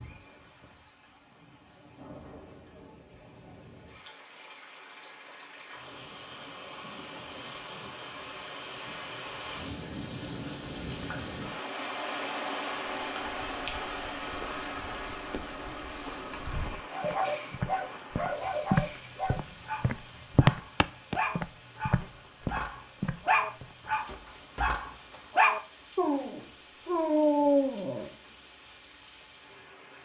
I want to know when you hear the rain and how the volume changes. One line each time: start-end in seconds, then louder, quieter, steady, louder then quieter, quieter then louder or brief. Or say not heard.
0.0-30.0 louder then quieter.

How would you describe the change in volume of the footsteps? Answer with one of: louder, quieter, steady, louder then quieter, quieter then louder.
louder then quieter.